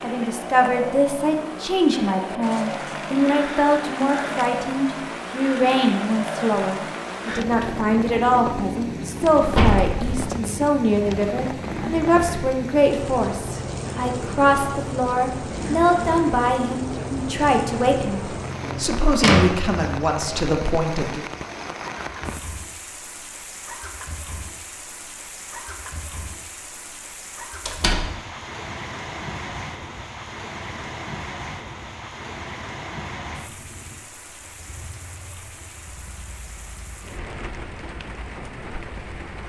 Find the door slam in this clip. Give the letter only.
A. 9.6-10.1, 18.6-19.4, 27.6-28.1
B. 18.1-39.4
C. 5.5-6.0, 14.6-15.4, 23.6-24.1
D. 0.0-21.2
A.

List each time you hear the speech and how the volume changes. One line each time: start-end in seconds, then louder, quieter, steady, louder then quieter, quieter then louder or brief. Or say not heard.
0.0-21.2 steady.